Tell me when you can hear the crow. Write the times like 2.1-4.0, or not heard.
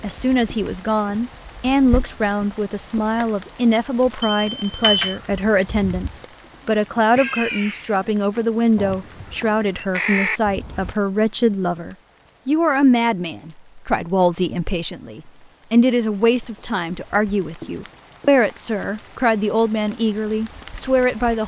5.0-10.9.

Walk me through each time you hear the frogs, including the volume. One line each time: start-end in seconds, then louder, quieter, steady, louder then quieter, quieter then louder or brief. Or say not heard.
not heard.